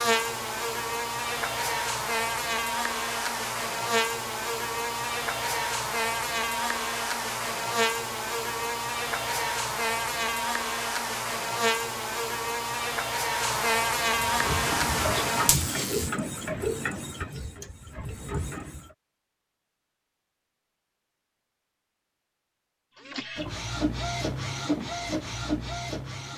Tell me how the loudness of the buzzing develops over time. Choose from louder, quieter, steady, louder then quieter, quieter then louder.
steady.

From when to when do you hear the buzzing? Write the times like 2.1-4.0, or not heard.
0.0-16.1.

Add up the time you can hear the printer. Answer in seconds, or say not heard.
8 s.